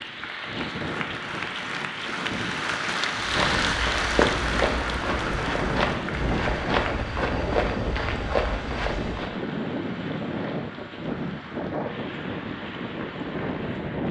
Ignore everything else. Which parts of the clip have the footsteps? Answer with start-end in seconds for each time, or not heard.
3.1-9.3.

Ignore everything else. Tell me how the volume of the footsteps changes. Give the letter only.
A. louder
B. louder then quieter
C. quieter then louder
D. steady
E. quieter
D.